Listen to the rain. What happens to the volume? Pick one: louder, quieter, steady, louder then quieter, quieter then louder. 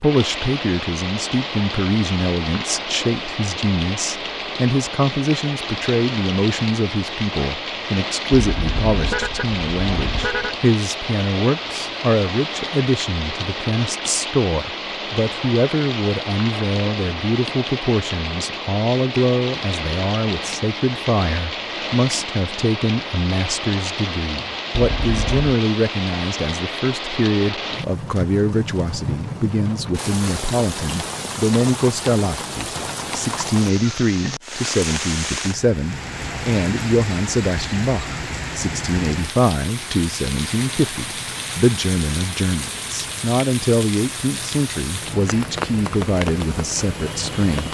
steady.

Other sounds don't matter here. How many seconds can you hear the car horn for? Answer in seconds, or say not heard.
3 s.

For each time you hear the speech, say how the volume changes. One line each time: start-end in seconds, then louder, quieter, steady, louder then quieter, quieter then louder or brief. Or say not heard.
0.0-47.6 steady.